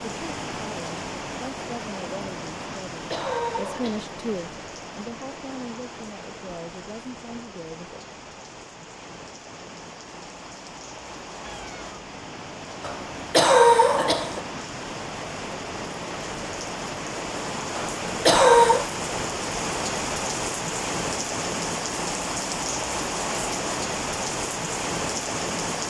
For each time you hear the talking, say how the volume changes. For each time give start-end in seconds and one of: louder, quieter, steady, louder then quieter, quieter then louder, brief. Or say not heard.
0.1-8.0 louder then quieter.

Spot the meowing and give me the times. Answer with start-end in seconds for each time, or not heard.
11.4-12.0.